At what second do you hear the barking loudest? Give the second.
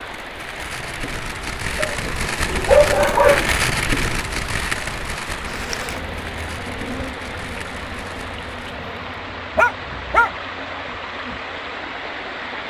3 s.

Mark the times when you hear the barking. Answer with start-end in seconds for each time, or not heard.
1.8-3.5, 9.6-10.3.